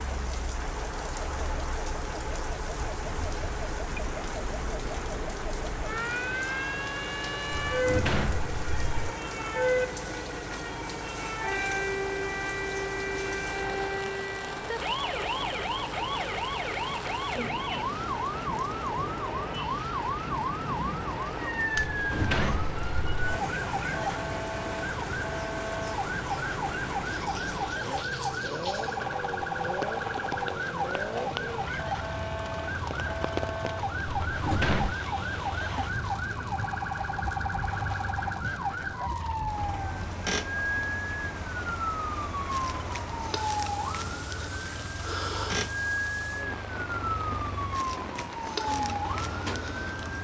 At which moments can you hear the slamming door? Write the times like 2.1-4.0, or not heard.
7.5-9.1, 21.8-23.4, 34.2-35.0.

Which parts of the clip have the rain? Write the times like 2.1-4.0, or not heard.
0.0-50.0.